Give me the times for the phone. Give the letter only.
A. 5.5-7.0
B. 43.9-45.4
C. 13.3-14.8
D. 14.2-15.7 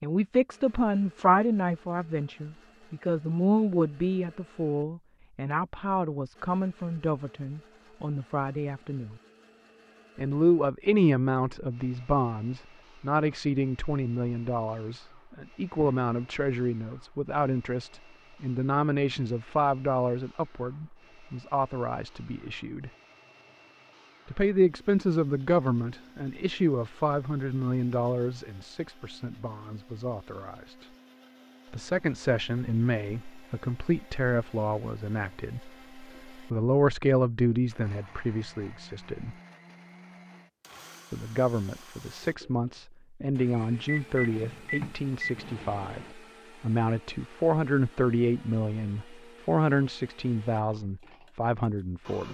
B.